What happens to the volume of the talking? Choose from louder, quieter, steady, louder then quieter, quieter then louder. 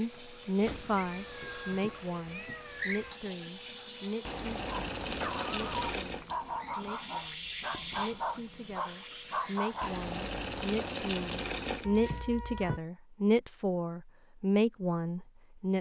quieter then louder.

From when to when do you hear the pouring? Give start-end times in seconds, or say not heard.
4.2-6.3, 9.8-11.9.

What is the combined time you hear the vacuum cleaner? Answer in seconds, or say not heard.
10 s.